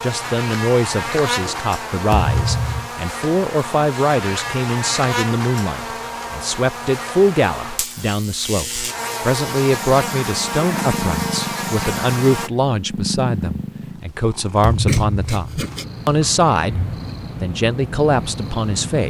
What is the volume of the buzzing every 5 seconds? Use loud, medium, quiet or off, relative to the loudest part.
loud, loud, loud, off.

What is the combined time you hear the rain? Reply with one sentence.
You can't hear the rain here.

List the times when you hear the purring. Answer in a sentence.
The purring can be heard from 9.6 to 19.0 s.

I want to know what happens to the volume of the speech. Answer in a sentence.
The volume of the speech stays about the same.